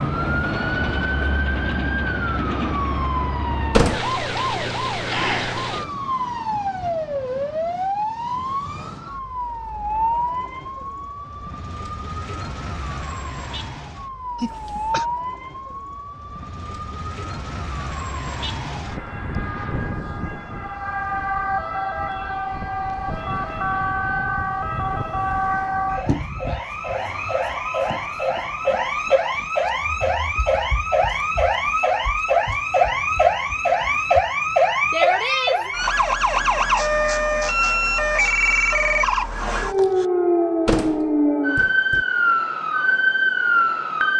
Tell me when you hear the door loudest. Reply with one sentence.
The volume of the door peaks at 4 seconds.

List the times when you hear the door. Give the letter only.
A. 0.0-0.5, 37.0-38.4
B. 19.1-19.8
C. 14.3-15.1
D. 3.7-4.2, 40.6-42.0
D.